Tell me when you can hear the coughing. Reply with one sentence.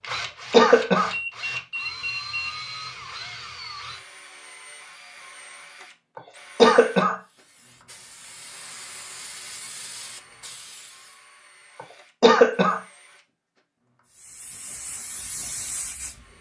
You can hear the coughing from 0.1 to 1.1 s, from 6.2 to 7.2 s and from 12.2 to 12.8 s.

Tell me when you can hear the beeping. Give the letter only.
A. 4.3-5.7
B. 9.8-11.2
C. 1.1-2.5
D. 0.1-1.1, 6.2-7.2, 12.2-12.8
C.